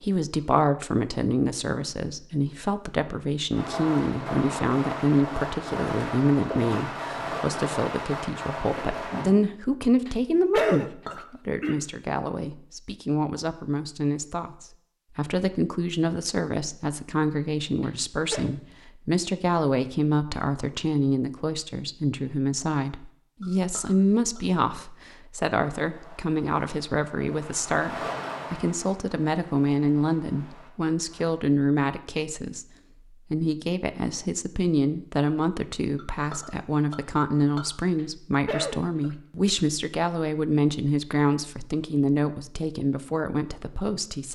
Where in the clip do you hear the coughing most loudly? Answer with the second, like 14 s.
11 s.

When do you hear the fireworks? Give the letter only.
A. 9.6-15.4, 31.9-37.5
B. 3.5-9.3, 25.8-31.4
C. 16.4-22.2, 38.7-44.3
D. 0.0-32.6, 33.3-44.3
B.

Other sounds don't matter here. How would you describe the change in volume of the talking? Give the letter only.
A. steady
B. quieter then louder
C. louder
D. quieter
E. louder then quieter
A.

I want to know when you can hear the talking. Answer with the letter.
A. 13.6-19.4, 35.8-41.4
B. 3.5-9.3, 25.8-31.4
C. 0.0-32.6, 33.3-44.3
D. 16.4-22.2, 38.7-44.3
C.